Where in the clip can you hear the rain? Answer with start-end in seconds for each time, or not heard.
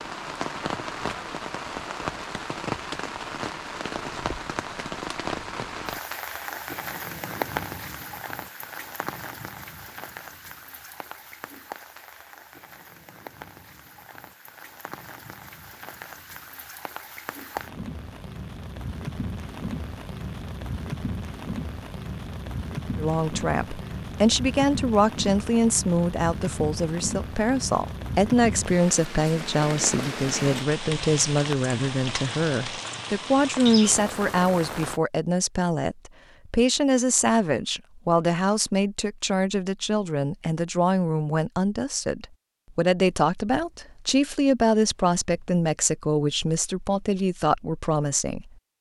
0.0-35.0.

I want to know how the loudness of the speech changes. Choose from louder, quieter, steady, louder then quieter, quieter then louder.
steady.